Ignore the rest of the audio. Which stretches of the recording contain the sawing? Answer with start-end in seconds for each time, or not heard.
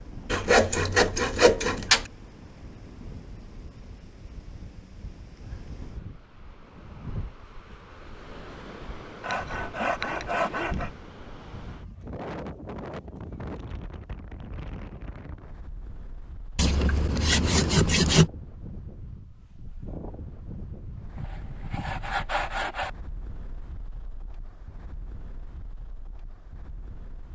0.3-2.0, 9.2-10.9, 16.6-18.3, 21.1-22.9.